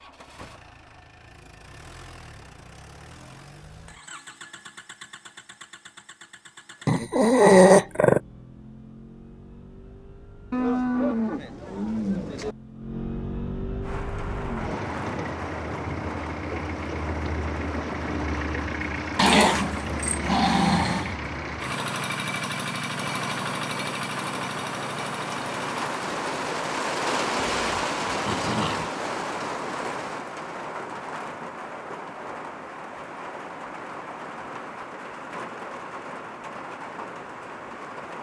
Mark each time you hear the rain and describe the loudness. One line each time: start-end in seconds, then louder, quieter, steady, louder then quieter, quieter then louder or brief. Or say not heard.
13.8-38.1 louder then quieter.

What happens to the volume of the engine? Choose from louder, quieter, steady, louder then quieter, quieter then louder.
louder.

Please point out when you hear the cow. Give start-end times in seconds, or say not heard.
10.5-12.6.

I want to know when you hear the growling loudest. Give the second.
8 s.